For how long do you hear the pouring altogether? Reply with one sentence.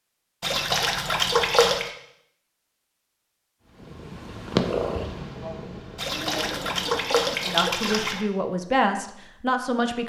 You can hear the pouring for 4 seconds altogether.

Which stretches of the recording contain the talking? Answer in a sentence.
The talking can be heard from 5.4 to 10.0 s.